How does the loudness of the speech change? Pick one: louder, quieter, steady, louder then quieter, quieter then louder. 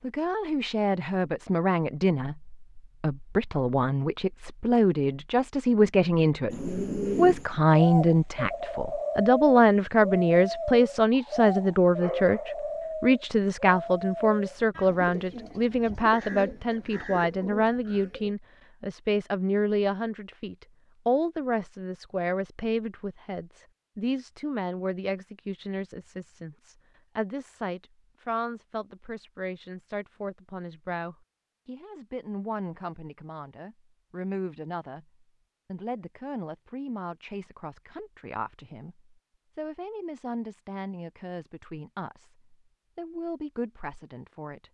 quieter.